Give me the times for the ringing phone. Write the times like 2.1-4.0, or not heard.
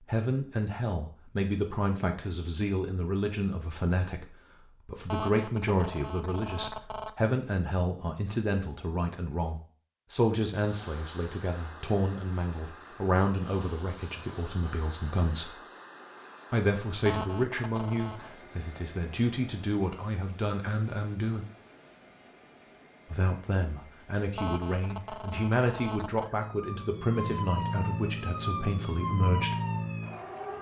5.0-7.2, 17.0-18.4, 24.4-26.3.